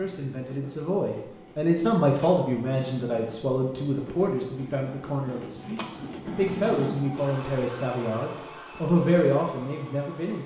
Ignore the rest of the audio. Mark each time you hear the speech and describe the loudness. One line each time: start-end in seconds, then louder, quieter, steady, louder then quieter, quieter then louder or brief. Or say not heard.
0.0-10.4 quieter then louder.